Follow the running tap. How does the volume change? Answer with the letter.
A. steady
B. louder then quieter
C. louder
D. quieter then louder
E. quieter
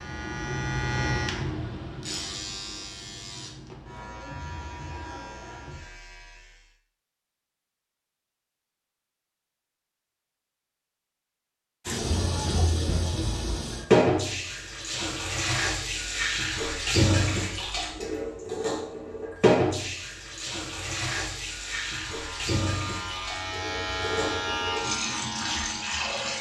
E.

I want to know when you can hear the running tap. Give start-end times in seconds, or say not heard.
11.8-26.3.